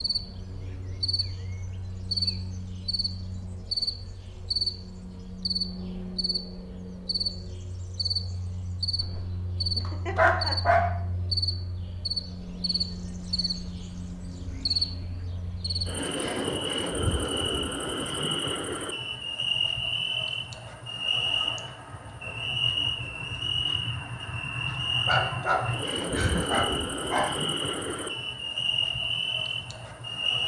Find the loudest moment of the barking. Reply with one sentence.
The volume of the barking peaks at 10 seconds.